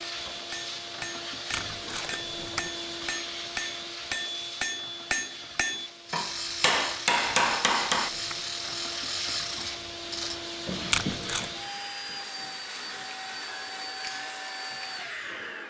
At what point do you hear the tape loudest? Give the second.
11 s.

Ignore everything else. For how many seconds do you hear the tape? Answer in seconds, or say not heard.
3 s.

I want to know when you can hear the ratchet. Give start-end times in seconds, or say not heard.
6.0-15.6.